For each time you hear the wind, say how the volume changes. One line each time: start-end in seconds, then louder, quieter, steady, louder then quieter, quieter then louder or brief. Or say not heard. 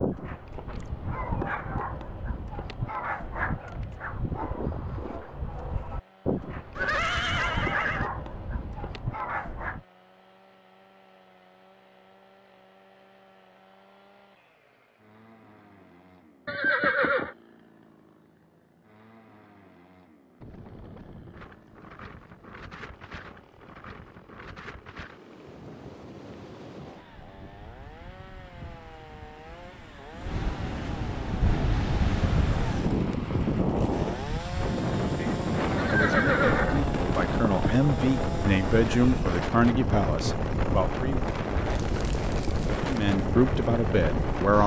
20.4-44.6 louder.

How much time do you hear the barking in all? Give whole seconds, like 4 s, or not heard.
10 s.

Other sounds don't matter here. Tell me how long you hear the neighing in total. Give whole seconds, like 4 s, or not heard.
4 s.